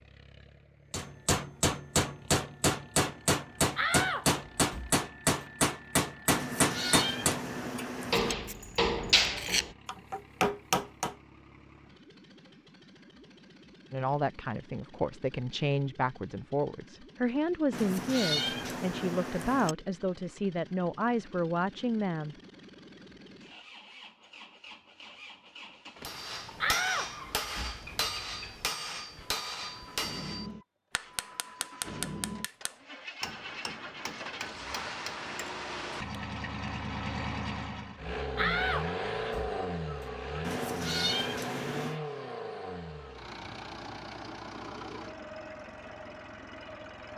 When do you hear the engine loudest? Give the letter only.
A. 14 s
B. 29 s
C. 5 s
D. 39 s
D.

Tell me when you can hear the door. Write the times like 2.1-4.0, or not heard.
3.8-5.5, 26.6-27.8, 38.4-40.0.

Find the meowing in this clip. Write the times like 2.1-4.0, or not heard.
6.3-8.3, 17.7-19.8, 40.4-42.0.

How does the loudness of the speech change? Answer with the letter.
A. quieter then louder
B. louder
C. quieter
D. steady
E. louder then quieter
D.